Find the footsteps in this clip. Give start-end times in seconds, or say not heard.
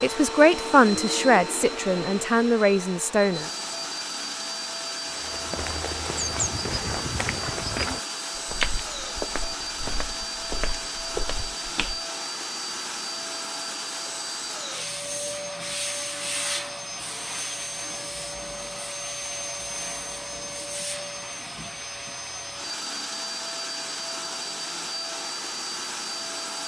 5.0-12.0.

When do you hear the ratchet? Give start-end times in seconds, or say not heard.
not heard.